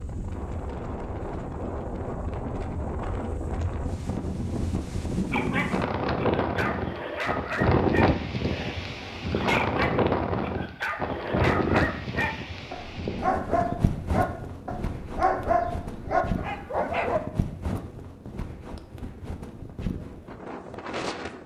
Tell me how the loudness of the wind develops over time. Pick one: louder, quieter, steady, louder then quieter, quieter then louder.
louder then quieter.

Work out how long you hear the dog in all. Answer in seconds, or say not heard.
12 s.